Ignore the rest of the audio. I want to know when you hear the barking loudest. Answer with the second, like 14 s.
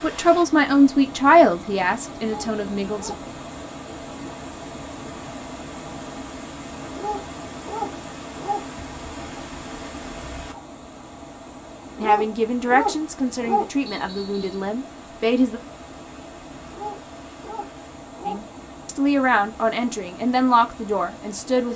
13 s.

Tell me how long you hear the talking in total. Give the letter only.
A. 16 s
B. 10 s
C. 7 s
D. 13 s
B.